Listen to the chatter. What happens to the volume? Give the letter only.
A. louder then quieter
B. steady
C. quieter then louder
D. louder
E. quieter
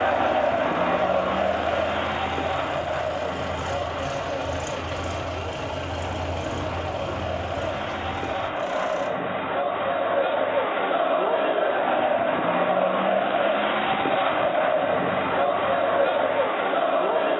C.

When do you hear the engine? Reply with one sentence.
The engine can be heard from 0.0 to 9.1 s.